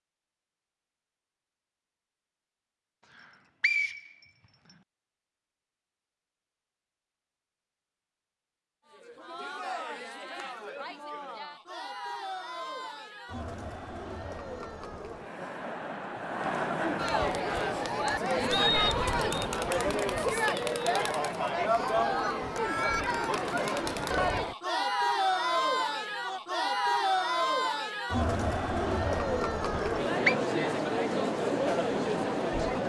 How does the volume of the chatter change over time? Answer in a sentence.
The volume of the chatter goes up.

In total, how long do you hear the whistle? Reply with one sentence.
The whistle can be heard for 3 seconds in total.